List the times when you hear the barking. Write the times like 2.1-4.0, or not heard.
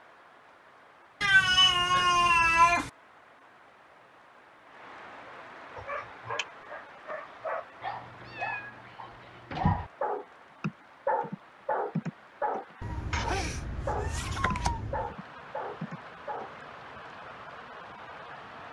5.8-16.6.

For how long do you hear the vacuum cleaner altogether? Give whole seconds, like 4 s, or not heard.
not heard.